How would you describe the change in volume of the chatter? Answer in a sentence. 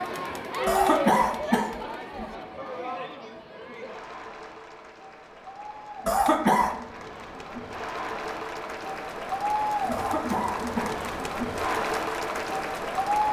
The volume of the chatter goes down, then up.